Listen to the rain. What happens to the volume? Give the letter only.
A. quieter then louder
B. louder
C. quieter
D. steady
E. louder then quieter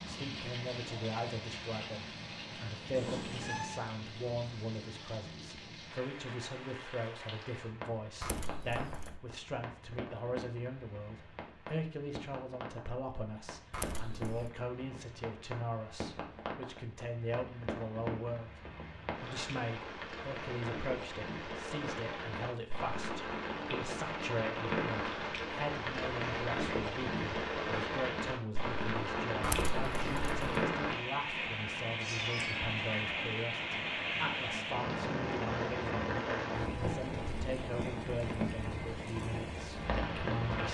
B.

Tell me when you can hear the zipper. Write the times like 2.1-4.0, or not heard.
not heard.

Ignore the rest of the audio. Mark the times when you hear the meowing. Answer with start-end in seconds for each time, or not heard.
2.9-3.8, 32.0-32.7.